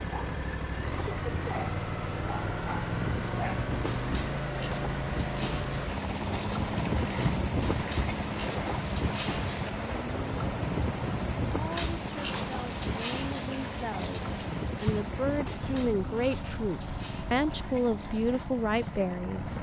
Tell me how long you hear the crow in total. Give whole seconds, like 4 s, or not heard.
not heard.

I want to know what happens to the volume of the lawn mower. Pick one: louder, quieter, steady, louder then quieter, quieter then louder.
quieter.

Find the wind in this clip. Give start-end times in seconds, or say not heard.
0.0-19.5.